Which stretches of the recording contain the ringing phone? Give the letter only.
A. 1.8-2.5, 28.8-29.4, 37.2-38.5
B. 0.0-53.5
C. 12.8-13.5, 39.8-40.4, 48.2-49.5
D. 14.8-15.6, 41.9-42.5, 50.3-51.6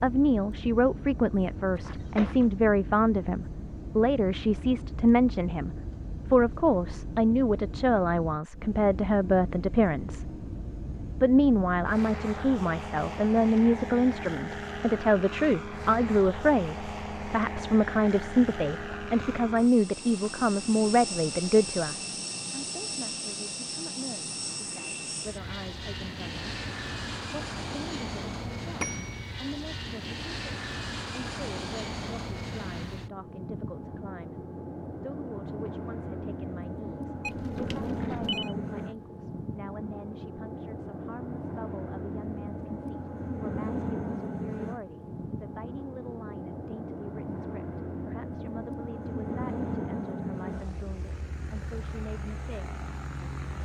A.